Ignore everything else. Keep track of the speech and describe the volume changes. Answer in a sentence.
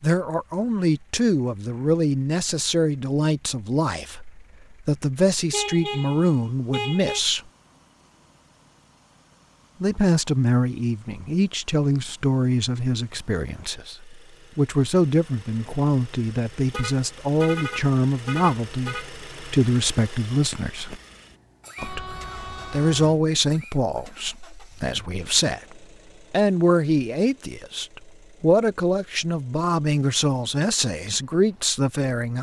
The loudness of the speech stays about the same.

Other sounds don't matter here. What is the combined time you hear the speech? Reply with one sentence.
The speech can be heard for 29 seconds in total.